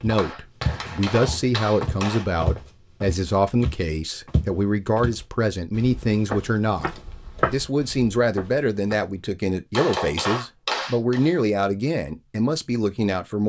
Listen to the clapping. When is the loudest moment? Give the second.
10 s.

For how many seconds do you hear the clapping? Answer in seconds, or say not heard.
4 s.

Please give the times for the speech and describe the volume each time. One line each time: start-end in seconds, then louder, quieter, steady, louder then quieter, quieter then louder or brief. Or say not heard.
0.0-13.4 steady.